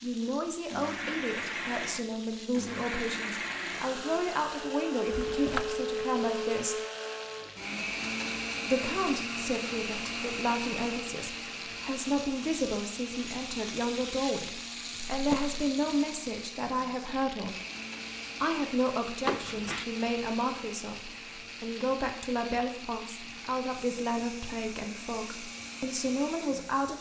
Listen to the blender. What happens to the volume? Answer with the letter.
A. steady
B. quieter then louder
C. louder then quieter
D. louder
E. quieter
E.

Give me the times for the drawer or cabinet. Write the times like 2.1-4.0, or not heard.
5.1-5.8, 15.1-15.6, 19.2-19.9.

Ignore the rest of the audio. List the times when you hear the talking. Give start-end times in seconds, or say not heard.
0.0-6.8, 8.7-17.6, 18.4-26.9.